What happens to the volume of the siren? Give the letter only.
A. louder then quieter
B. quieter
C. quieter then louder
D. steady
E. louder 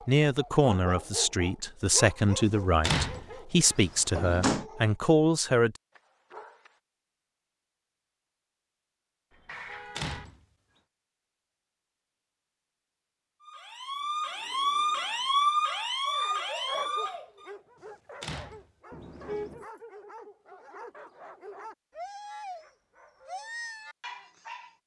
A.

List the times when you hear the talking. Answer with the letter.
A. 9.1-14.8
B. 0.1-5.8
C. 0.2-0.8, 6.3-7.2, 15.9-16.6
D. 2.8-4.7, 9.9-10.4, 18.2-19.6
B.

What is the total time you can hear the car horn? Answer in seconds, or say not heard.
2 s.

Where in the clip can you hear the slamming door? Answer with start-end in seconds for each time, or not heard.
2.8-4.7, 9.9-10.4, 18.2-19.6.